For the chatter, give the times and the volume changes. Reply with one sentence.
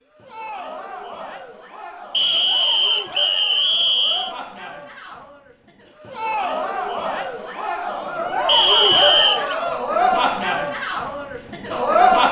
The chatter can be heard from 0.1 to 12.2 s, getting louder.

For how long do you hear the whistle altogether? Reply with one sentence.
You can hear the whistle for 3 seconds altogether.